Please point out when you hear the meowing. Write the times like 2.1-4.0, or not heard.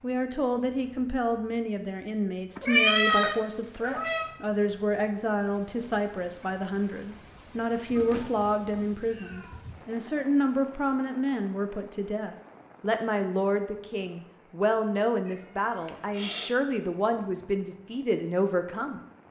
2.6-4.3, 8.0-9.6, 15.2-16.6.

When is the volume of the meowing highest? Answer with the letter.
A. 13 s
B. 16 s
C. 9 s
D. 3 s
D.